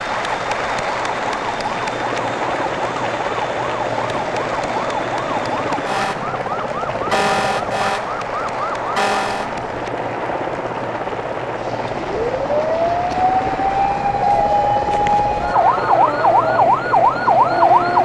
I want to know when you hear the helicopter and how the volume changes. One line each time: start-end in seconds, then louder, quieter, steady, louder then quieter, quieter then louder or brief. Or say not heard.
0.0-18.0 steady.